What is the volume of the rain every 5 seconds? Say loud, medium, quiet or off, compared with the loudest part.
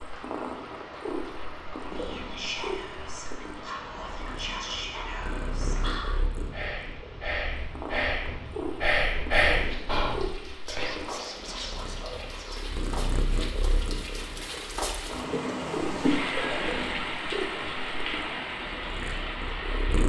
medium, quiet, medium, loud.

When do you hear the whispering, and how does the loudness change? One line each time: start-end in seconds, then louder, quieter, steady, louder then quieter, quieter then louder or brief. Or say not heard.
1.9-12.7 louder then quieter.